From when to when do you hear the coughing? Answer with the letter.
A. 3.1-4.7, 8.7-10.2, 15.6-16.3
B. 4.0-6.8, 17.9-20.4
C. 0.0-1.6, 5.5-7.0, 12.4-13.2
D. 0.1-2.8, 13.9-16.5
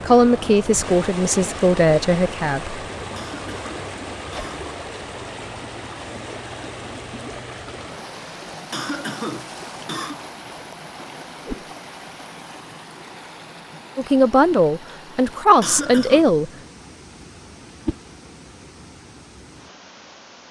A.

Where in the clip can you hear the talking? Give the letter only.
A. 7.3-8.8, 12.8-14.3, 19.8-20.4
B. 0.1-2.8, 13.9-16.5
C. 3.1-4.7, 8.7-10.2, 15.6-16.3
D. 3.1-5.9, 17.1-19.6
B.